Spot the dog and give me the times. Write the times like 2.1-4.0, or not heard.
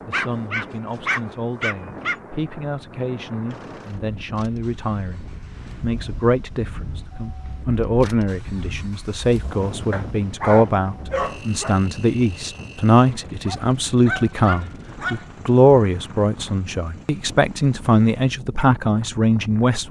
0.1-2.1, 9.9-11.8, 13.4-15.2.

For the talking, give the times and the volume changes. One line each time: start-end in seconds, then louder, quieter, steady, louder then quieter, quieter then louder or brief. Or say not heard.
0.1-19.8 louder.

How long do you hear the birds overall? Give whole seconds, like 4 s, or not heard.
not heard.